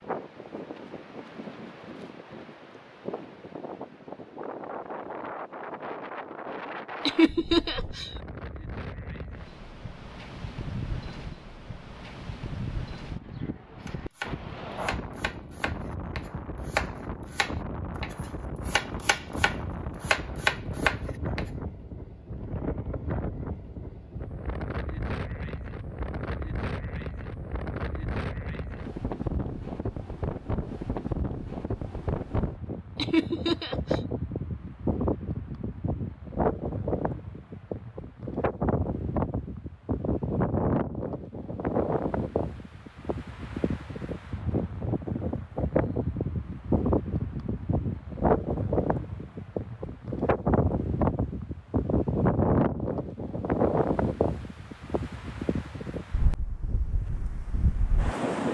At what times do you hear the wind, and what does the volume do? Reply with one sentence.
The wind can be heard from 0.0 to 58.4 s, getting louder.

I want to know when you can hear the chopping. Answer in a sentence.
You can hear the chopping from 13.8 to 21.4 s.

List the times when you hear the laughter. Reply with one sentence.
You can hear the laughter from 7.0 to 8.1 s and from 33.0 to 34.0 s.